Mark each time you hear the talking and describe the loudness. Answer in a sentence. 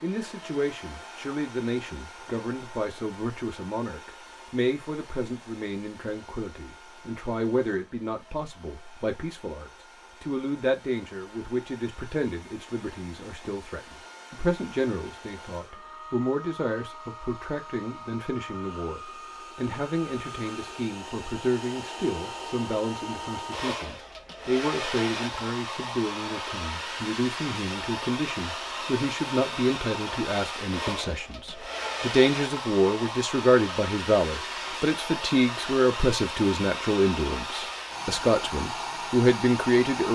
The talking can be heard from 0.0 to 40.1 s, getting louder.